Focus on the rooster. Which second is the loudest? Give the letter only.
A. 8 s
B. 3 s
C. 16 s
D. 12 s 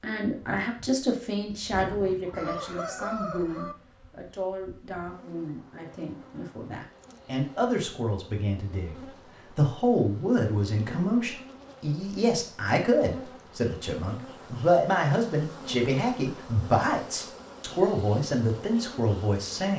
B.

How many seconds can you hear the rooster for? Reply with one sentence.
You can hear the rooster for 2 seconds altogether.